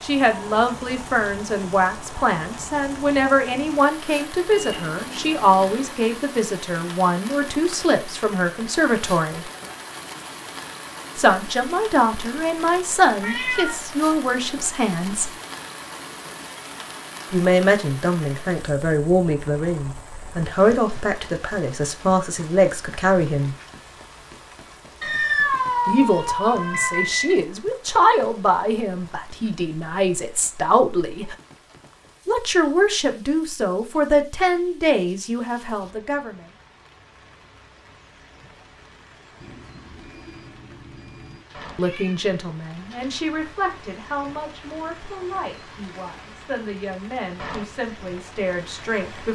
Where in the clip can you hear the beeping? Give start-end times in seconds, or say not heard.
4.5-6.0, 26.6-27.4, 39.4-41.4.